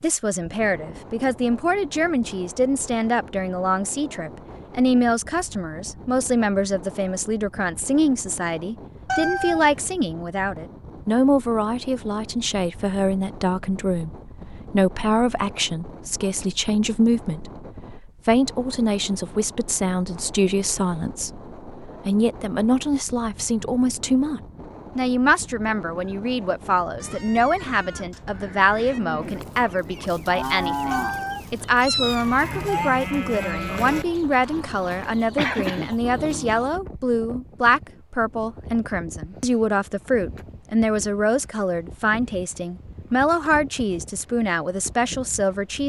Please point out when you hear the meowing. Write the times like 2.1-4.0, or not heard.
9.1-9.7, 30.9-32.9.